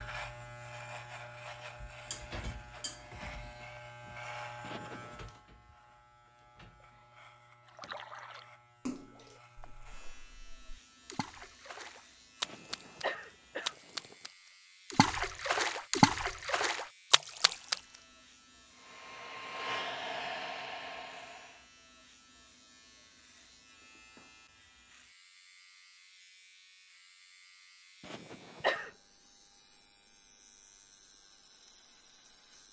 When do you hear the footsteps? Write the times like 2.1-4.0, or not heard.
not heard.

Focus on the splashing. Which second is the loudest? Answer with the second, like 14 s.
16 s.